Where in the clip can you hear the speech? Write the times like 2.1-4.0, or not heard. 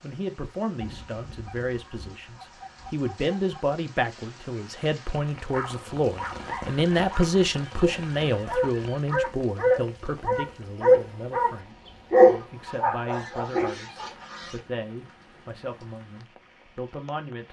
0.0-17.4.